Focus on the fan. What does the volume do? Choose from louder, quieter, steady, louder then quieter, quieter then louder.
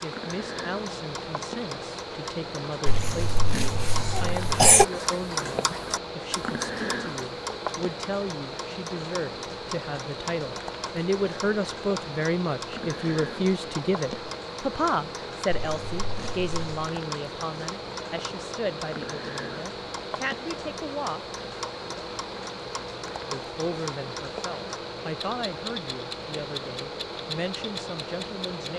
steady.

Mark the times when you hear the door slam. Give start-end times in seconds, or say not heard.
not heard.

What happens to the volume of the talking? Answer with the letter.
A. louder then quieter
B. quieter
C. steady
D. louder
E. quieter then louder
A.